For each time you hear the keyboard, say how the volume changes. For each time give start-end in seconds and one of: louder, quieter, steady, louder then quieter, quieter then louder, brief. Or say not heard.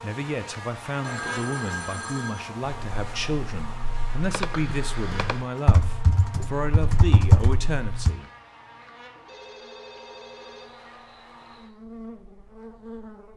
2.9-8.2 louder.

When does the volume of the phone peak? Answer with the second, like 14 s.
1 s.